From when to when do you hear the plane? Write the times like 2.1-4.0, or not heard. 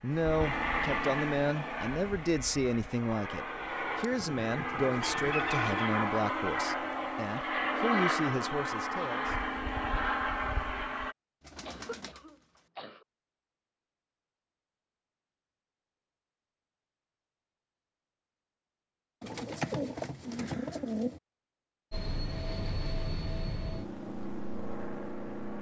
0.0-11.2, 21.9-25.5.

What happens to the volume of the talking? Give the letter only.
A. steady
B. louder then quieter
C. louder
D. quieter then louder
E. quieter
A.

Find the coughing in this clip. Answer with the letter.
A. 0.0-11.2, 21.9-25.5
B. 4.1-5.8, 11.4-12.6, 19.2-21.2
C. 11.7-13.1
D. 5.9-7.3
C.